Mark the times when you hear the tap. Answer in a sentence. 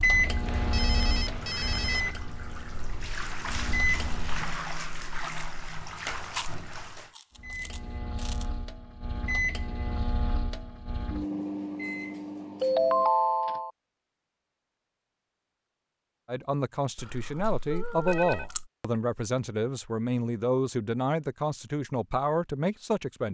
You can hear the tap from 0.0 to 7.1 s.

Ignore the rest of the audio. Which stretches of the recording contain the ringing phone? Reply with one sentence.
You can hear the ringing phone from 0.5 to 2.1 s, from 12.6 to 13.7 s and from 17.6 to 18.5 s.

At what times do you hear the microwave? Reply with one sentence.
You can hear the microwave from 0.0 to 4.4 s and from 7.3 to 13.6 s.